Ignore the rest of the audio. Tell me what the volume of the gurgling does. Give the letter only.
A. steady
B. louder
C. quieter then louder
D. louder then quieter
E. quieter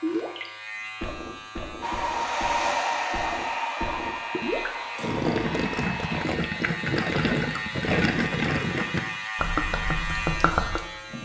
B.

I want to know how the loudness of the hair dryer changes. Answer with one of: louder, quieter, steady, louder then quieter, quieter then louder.
quieter.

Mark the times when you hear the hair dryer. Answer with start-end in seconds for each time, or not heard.
1.8-6.3.